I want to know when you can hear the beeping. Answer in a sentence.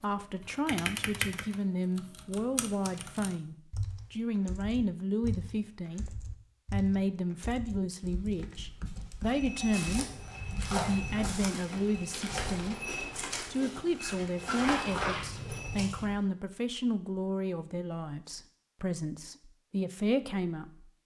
You can't hear the beeping here.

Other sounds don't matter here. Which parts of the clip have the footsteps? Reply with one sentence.
You can hear the footsteps from 9.2 to 16.2 s.